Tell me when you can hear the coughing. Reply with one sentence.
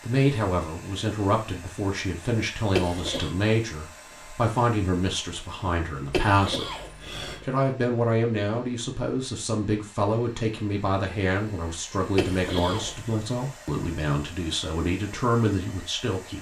You can hear the coughing from 2.7 to 3.4 s, from 6.1 to 7.5 s and from 12.2 to 13.0 s.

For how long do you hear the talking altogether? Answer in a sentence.
You can hear the talking for 16 seconds altogether.